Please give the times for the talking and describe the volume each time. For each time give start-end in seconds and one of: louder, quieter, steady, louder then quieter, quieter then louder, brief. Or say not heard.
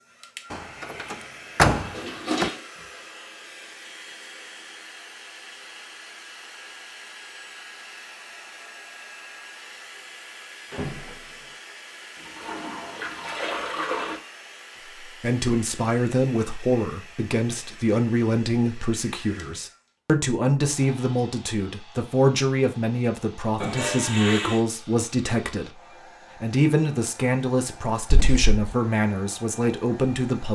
15.1-30.4 steady.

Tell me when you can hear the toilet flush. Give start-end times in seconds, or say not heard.
1.9-2.6, 12.2-14.2, 23.6-24.6.